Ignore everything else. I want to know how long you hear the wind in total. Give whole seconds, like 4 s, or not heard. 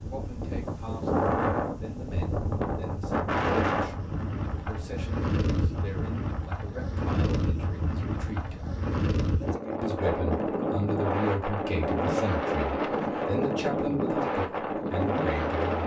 16 s.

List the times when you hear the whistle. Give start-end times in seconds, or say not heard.
not heard.